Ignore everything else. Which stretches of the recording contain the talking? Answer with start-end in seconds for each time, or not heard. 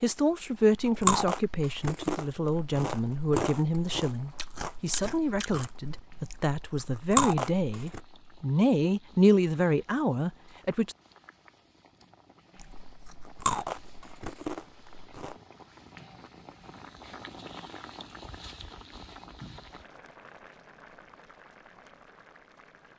0.0-10.9.